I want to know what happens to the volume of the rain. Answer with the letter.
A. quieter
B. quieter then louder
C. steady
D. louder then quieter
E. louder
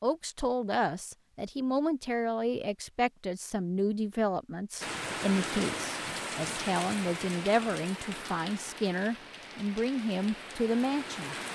A.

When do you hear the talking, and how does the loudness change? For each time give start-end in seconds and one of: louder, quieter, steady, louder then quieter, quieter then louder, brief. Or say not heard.
0.0-11.4 steady.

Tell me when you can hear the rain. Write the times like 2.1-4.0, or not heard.
4.8-11.4.